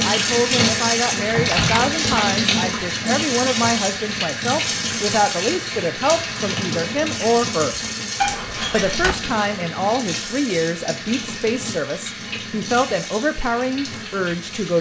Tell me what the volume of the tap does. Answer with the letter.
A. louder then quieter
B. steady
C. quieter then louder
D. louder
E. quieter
E.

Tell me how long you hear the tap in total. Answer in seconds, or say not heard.
15 s.